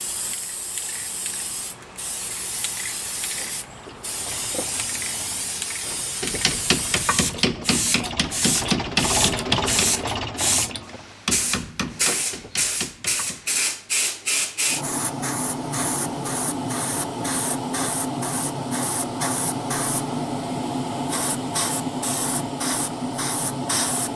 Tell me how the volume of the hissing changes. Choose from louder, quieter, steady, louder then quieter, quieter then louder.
louder.